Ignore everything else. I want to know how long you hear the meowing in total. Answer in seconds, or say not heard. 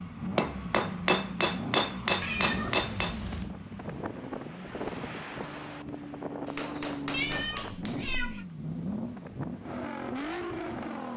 3 s.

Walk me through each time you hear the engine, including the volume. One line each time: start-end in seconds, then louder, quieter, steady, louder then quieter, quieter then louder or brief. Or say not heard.
0.0-11.1 quieter then louder.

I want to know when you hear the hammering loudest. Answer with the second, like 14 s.
2 s.